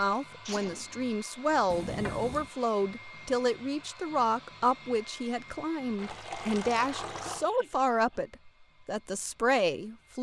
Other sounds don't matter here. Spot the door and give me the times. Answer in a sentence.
The door can't be heard in this clip.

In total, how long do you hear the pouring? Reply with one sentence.
The pouring can be heard for 2 seconds in total.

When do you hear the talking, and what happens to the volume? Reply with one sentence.
You can hear the talking from 0.0 to 10.1 s, at a steady volume.